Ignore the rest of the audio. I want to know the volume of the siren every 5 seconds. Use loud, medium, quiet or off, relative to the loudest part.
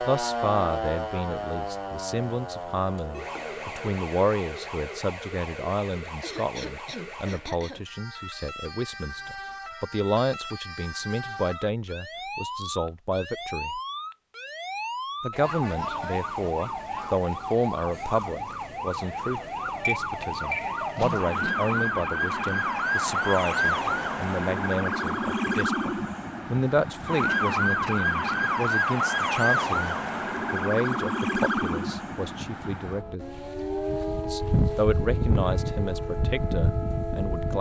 medium, quiet, medium, medium, loud, loud, loud, loud.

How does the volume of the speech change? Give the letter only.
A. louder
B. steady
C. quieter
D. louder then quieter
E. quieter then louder
B.